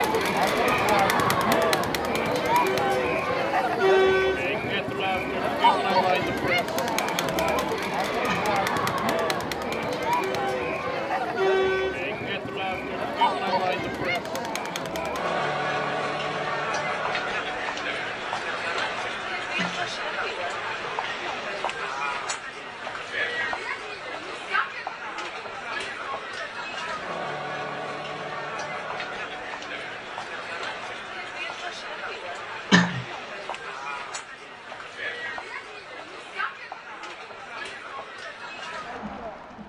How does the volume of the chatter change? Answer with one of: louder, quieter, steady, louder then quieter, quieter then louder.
quieter.